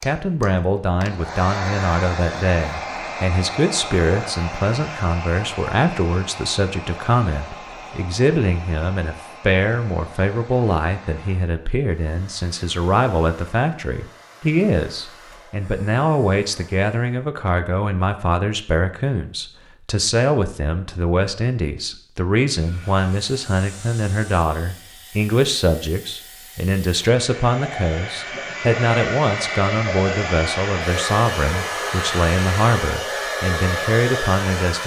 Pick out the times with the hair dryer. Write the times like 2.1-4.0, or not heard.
0.0-17.2, 22.5-34.8.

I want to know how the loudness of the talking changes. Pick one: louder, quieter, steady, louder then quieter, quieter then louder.
steady.